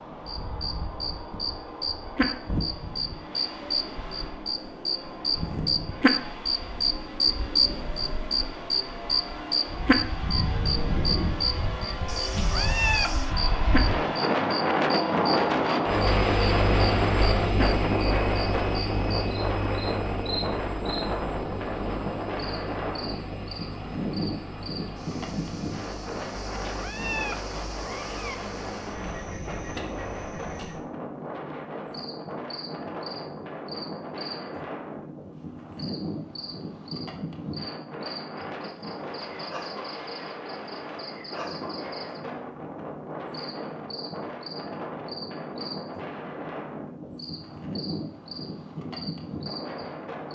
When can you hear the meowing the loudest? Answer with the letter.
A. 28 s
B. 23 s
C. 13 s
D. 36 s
C.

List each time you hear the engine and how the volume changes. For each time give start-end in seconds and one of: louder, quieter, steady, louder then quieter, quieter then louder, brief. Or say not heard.
0.0-30.4 louder then quieter.